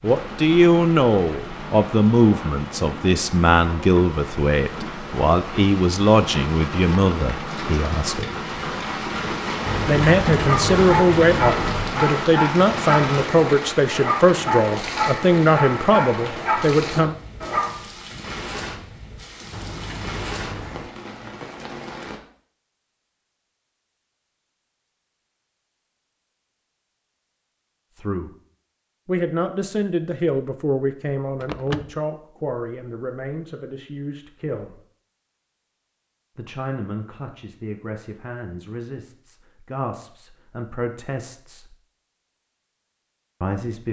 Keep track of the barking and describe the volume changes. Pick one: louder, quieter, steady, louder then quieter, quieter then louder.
steady.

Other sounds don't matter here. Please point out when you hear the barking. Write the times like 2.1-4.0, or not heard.
10.3-17.8.